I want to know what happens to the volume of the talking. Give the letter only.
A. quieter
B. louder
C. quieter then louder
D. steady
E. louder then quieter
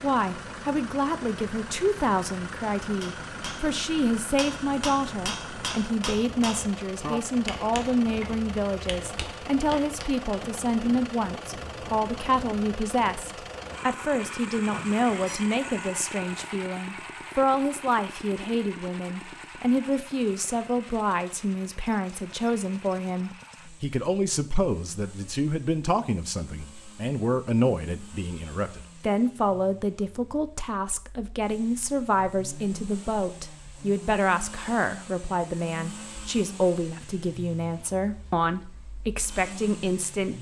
D.